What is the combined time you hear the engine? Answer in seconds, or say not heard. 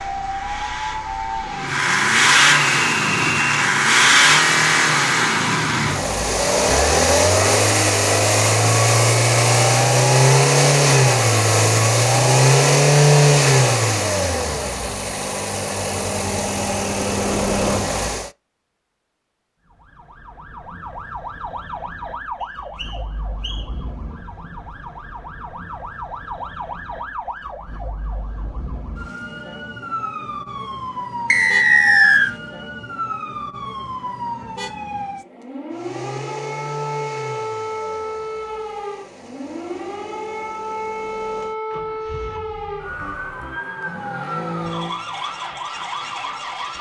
29 s.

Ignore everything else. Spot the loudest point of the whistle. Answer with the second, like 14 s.
32 s.